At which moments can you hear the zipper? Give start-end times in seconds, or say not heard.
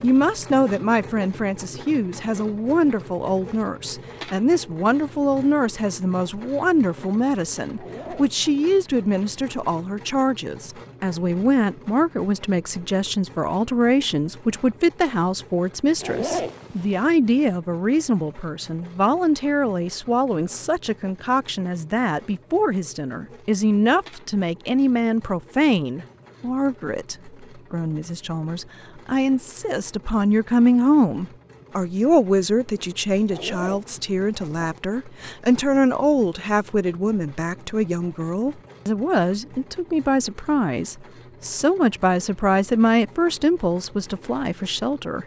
7.8-8.4, 16.0-17.1, 33.2-34.6.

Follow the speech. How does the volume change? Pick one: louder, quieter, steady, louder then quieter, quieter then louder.
steady.